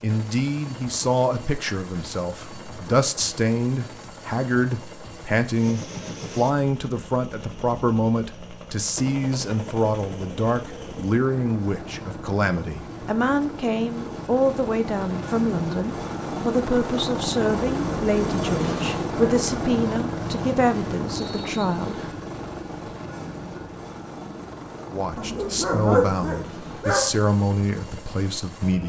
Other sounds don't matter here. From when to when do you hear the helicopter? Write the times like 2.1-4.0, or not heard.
0.0-28.8.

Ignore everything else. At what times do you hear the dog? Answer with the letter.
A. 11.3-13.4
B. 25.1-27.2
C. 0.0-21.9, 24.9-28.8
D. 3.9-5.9
B.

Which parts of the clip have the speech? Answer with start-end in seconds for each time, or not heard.
0.0-21.9, 24.9-28.8.